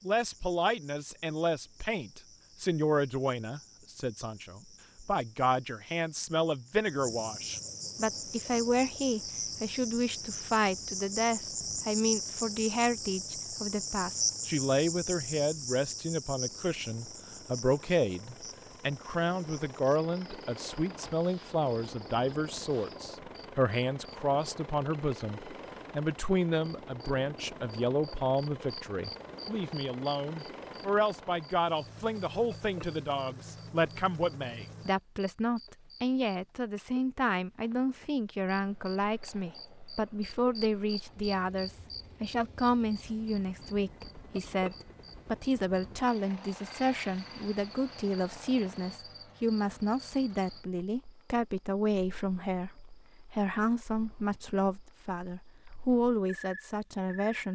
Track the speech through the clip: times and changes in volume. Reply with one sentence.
You can hear the speech from 0.0 to 57.5 s, at a steady volume.